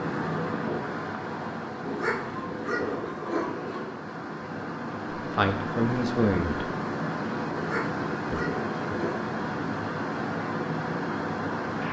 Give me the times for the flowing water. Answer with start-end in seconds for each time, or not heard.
0.0-11.8.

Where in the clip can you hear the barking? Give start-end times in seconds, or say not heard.
1.9-3.9, 7.5-9.2.